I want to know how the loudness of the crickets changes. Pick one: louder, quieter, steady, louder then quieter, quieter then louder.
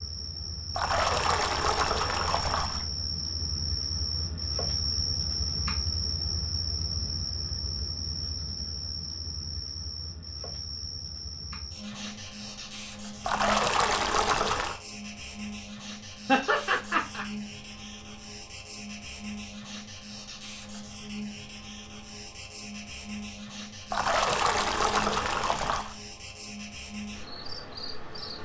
quieter.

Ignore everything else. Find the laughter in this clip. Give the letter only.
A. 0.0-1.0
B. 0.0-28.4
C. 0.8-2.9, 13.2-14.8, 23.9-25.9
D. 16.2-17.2
D.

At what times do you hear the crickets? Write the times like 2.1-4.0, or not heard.
0.0-28.4.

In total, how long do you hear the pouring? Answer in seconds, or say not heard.
6 s.